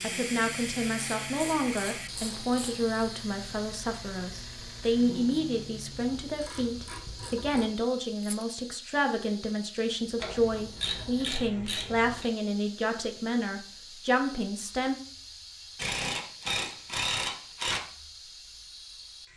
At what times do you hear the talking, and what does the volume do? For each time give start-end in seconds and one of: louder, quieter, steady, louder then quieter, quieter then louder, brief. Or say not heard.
0.0-14.9 steady.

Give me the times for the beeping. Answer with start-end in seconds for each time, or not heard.
not heard.